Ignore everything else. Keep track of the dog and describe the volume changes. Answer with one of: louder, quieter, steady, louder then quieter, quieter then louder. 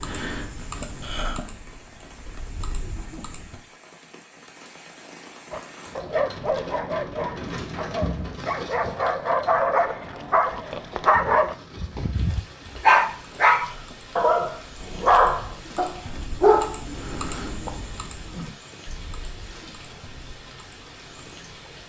louder.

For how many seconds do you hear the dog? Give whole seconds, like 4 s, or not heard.
11 s.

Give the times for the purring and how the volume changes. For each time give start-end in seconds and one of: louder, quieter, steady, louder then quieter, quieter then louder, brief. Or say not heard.
not heard.